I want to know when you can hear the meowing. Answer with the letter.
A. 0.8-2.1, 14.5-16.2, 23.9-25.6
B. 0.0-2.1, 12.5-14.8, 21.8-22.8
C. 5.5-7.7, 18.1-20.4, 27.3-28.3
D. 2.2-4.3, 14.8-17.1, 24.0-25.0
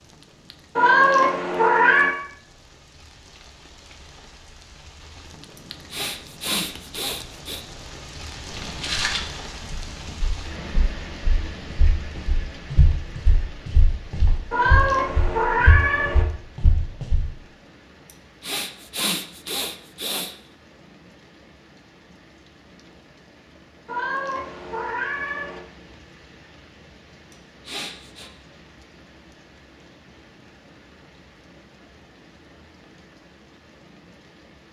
A.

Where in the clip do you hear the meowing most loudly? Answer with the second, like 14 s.
1 s.